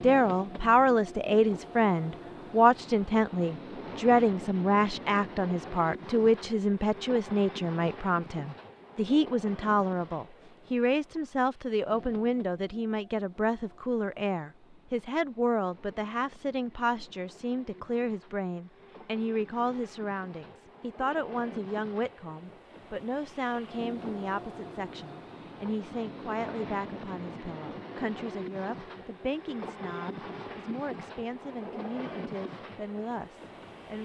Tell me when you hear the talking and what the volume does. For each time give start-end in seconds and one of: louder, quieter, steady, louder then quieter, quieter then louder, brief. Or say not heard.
0.0-34.0 quieter.